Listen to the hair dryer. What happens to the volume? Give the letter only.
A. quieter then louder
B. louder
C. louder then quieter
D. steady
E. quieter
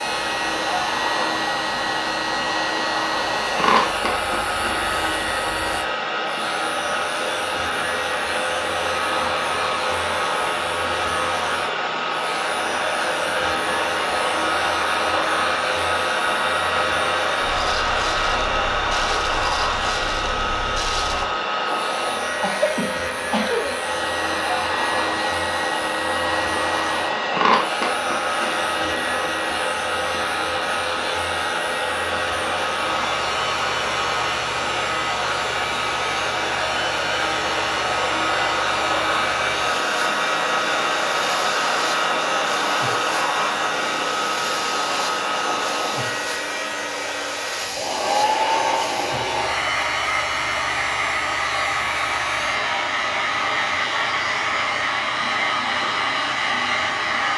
D.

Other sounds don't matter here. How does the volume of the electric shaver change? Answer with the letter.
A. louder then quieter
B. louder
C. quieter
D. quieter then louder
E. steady
E.